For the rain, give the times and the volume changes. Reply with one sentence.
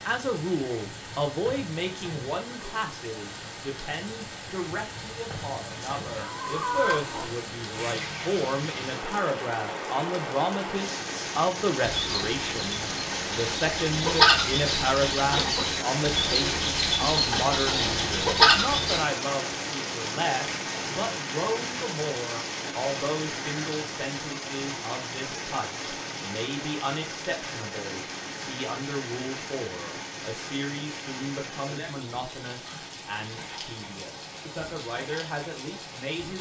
The rain can be heard from 0.0 to 36.3 s, getting louder then quieter.